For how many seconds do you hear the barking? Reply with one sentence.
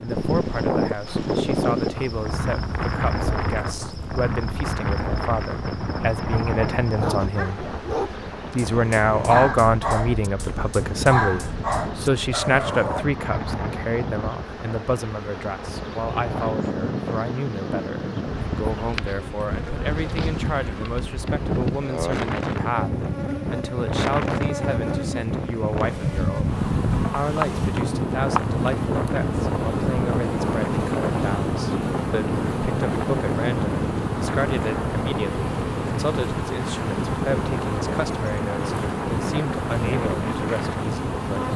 You can hear the barking for 6 seconds altogether.